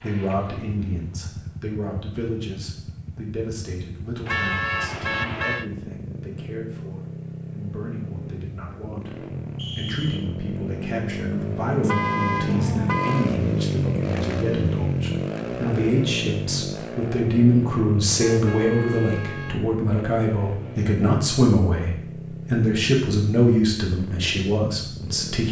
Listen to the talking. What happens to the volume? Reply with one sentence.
The loudness of the talking goes up.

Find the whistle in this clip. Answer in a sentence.
The whistle can be heard from 9.6 to 10.3 s.